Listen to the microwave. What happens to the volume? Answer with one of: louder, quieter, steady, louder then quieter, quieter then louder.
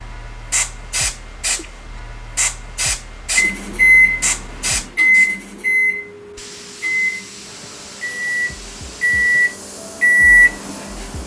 quieter then louder.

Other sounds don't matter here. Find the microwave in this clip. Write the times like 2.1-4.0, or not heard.
3.4-11.2.